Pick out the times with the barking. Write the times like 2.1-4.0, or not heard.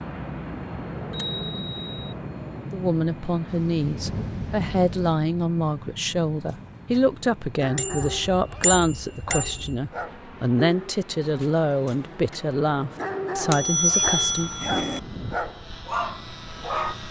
6.3-16.9.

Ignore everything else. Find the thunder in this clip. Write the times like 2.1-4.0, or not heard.
3.5-5.2.